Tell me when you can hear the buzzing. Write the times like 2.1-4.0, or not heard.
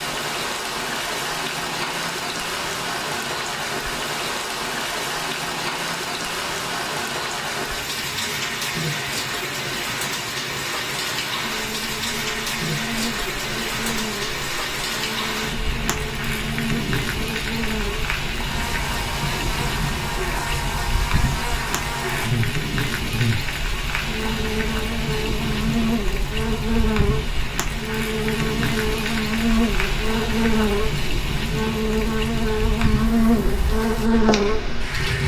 11.4-35.2.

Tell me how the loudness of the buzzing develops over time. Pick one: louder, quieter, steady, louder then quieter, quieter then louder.
louder.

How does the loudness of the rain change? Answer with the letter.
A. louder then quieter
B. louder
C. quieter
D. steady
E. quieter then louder
D.